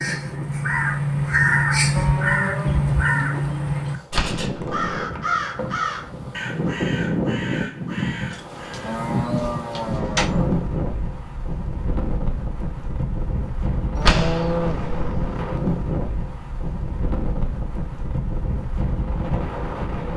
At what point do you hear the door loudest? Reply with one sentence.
The volume of the door peaks at 14 seconds.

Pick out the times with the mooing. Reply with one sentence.
You can hear the mooing from 1.9 to 4.0 s, from 8.7 to 10.5 s and from 13.9 to 14.8 s.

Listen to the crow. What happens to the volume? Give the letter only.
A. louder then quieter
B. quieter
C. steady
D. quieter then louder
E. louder
B.